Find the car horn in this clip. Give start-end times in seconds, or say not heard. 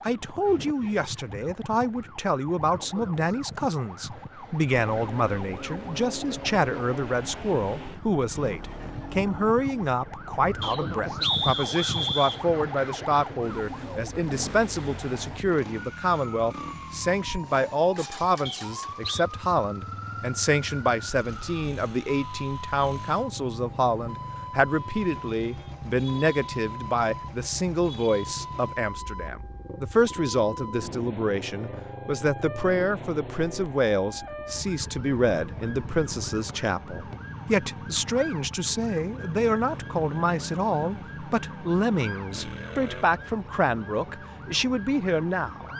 not heard.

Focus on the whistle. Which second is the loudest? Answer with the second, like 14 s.
11 s.